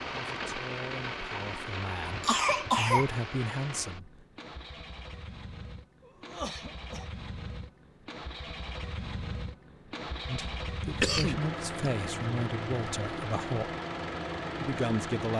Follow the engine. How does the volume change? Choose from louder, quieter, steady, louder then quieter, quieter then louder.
quieter then louder.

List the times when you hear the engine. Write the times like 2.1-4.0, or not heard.
0.0-15.3.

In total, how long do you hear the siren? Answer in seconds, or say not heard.
not heard.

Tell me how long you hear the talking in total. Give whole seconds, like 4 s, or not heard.
8 s.